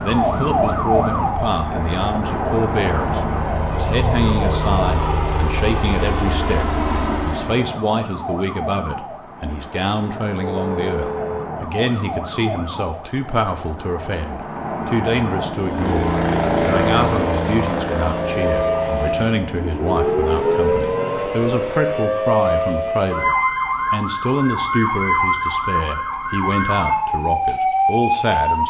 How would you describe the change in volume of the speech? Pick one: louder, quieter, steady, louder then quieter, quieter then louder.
steady.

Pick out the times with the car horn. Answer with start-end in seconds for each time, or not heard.
10.5-11.6.